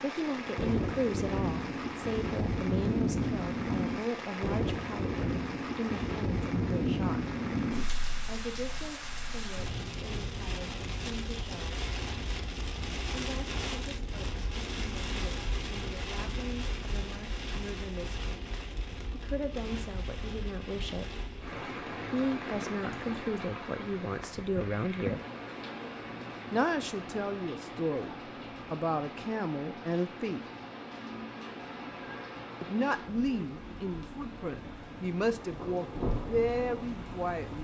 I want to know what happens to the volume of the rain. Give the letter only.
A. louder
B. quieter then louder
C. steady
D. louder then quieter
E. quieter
E.